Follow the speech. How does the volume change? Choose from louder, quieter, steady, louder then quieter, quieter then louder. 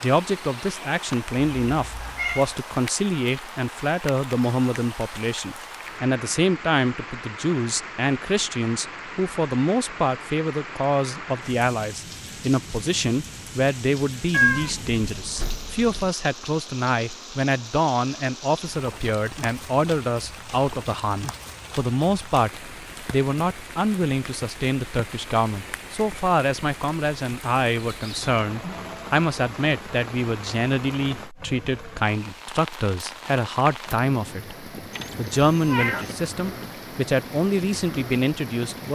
steady.